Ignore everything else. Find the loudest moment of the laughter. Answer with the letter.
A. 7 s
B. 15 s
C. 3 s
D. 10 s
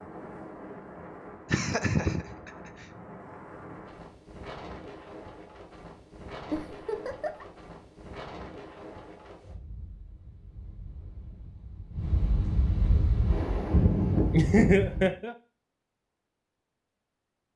B.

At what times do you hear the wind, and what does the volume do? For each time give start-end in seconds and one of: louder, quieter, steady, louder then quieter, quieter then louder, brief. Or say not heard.
0.0-15.1 quieter then louder.